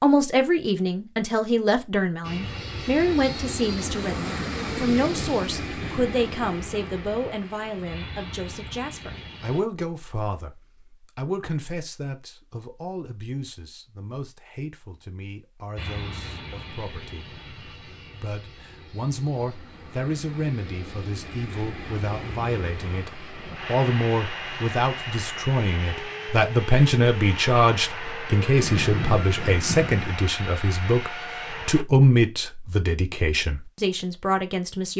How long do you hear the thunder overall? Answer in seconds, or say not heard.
3 s.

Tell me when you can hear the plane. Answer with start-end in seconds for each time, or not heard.
2.2-9.7, 15.8-31.9.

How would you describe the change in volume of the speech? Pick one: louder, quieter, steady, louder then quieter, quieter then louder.
quieter then louder.